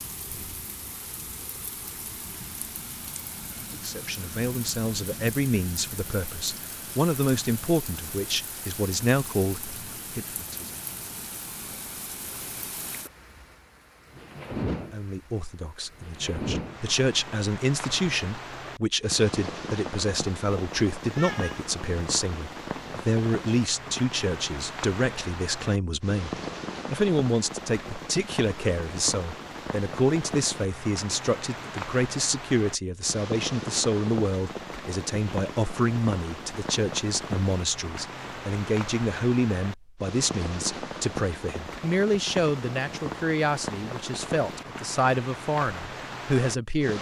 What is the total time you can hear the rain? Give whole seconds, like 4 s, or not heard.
47 s.